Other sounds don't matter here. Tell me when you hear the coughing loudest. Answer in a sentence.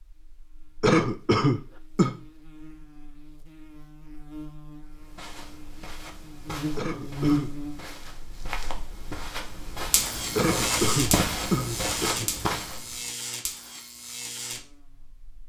The loudest moment of the coughing is at 1 second.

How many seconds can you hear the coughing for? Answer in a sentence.
You can hear the coughing for 4 seconds altogether.